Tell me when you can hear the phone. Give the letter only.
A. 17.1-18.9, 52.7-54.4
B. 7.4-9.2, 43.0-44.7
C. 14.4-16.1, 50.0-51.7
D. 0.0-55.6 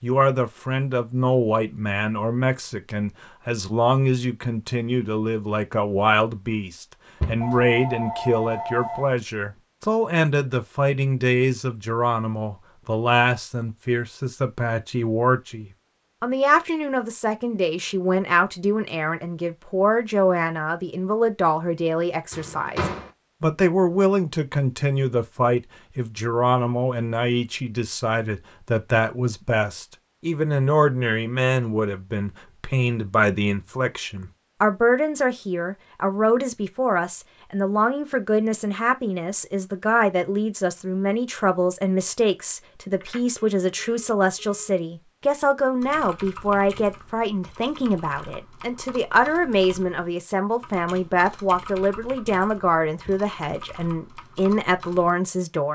B.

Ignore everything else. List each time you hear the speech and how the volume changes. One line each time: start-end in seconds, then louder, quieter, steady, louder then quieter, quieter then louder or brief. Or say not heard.
0.0-55.6 steady.